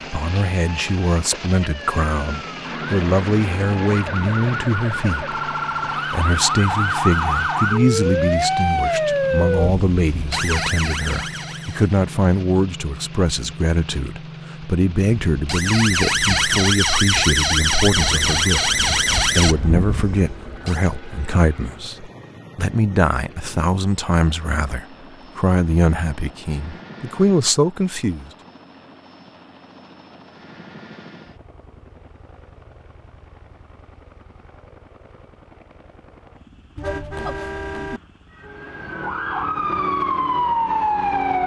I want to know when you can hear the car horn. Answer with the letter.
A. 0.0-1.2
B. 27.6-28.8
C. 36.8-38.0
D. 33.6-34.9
C.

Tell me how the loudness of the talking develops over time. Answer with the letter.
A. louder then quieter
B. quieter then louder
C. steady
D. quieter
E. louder
C.